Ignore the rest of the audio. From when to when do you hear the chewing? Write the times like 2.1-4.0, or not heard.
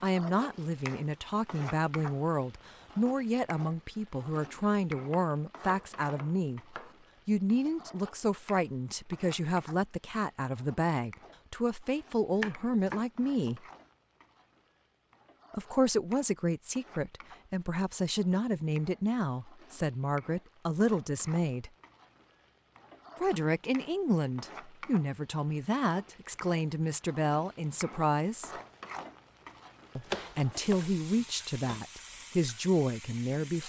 not heard.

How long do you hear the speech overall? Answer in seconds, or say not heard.
28 s.